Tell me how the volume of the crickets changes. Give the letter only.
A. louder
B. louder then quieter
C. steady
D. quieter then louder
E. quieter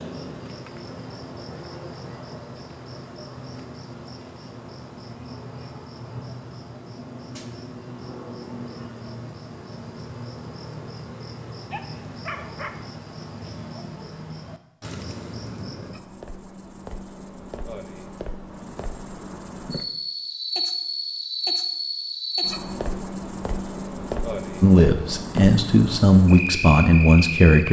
A.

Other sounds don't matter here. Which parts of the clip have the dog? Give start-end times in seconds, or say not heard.
11.7-12.8.